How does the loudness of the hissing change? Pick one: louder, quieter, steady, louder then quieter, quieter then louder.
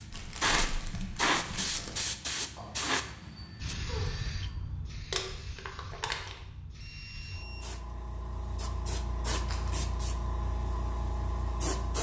quieter then louder.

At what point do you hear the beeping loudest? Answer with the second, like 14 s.
4 s.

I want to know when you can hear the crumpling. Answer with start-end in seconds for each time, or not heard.
0.1-2.0, 5.1-6.4, 9.3-9.9.